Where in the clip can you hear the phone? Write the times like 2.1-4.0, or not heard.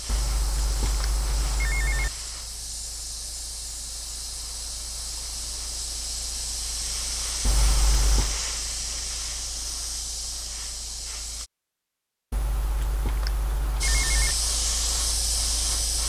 0.1-2.1, 7.4-8.4, 12.3-14.3.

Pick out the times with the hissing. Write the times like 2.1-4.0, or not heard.
0.0-11.5, 13.8-16.0.